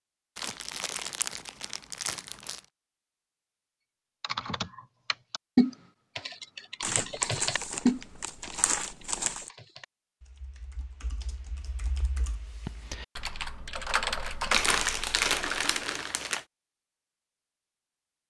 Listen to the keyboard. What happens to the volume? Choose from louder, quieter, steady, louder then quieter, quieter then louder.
quieter then louder.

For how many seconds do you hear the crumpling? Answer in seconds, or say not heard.
7 s.